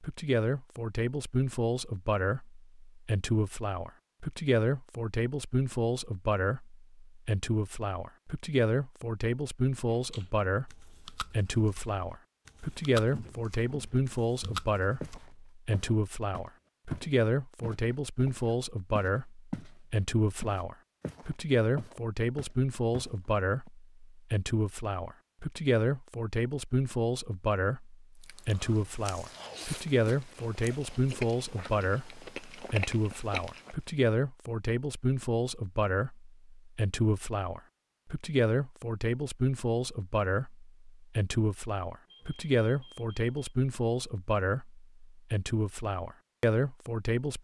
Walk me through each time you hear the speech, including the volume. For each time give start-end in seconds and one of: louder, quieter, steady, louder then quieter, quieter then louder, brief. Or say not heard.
0.0-47.3 steady.